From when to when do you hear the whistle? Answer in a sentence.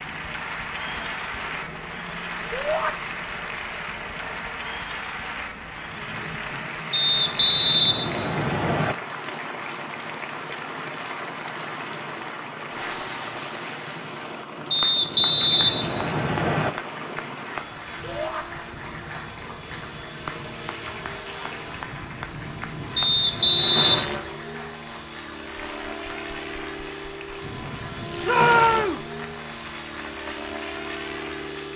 You can hear the whistle from 6.9 to 8.9 s, from 14.7 to 16.7 s and from 22.9 to 24.1 s.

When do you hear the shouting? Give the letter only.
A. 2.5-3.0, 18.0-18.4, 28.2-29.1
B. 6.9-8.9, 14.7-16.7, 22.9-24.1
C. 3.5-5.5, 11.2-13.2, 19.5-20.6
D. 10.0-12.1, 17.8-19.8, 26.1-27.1
A.